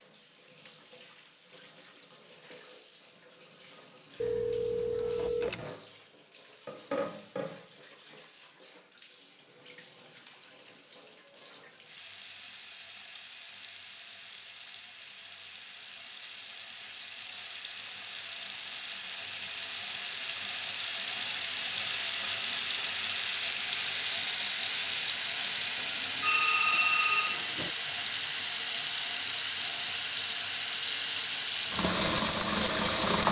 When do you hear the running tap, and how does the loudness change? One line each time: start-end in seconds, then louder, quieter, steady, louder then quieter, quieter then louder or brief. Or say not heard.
0.0-33.2 louder.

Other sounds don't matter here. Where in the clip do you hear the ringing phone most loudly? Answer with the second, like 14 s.
27 s.